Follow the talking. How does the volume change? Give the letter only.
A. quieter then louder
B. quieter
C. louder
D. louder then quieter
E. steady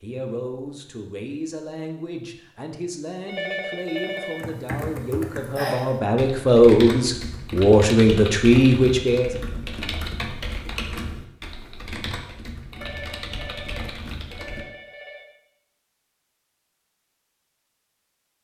C.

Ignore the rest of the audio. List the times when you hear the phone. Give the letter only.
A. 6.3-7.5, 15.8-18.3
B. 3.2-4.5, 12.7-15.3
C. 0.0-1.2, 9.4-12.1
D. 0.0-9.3
B.